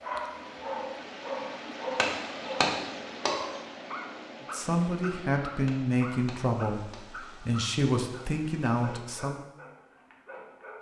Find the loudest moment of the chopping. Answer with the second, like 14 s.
3 s.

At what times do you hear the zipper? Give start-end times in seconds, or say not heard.
not heard.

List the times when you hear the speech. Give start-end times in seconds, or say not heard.
4.5-9.4.